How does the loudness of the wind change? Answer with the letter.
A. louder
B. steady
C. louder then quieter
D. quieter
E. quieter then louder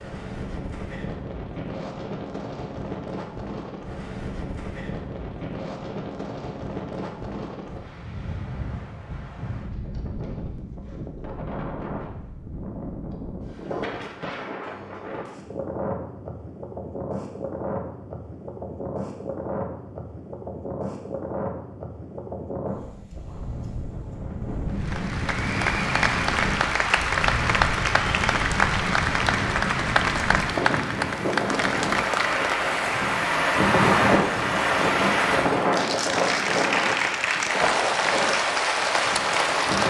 A.